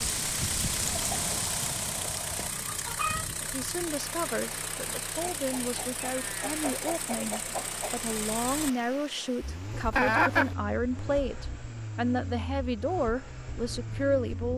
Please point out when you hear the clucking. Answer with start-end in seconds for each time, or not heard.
0.8-3.2, 5.2-8.0, 9.9-10.6.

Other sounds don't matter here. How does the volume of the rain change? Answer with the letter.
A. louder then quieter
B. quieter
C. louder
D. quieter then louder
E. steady
B.